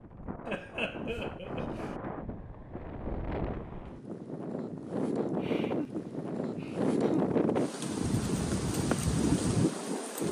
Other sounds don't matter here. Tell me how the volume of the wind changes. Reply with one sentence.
The loudness of the wind goes up.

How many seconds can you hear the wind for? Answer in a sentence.
You can hear the wind for 10 seconds altogether.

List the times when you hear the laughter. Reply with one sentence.
The laughter can be heard from 0.5 to 1.9 s and from 5.4 to 7.4 s.